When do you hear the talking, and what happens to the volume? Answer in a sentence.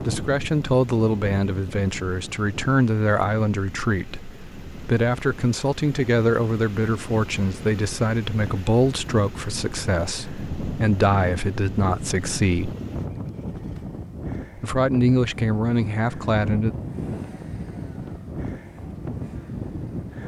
You can hear the talking from 0.0 to 12.8 s, at a steady volume; and briefly from 14.6 to 16.8 s.